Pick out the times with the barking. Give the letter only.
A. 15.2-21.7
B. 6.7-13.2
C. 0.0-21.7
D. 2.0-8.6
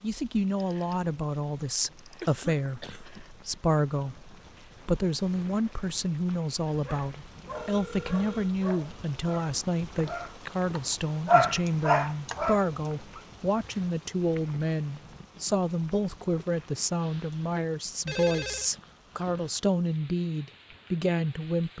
B.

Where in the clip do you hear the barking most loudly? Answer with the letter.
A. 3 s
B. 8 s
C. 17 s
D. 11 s
D.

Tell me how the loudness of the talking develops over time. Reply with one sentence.
The volume of the talking stays about the same.